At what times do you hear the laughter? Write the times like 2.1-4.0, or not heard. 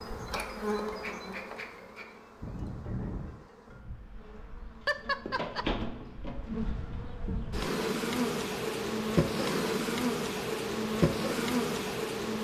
4.8-5.7.